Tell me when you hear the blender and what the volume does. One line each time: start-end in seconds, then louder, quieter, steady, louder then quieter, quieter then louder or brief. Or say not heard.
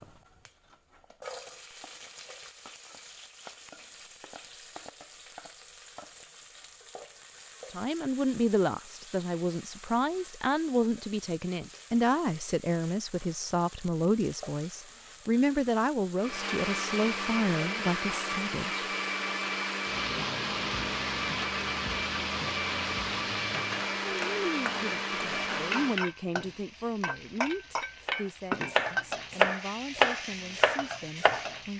16.1-26.1 steady.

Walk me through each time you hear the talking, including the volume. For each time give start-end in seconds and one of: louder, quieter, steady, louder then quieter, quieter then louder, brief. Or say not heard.
7.7-18.9 steady
24.2-31.7 quieter.